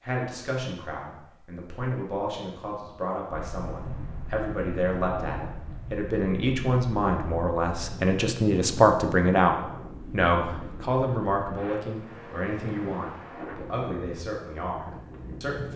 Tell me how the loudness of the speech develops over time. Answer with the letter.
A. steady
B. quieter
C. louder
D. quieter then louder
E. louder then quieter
E.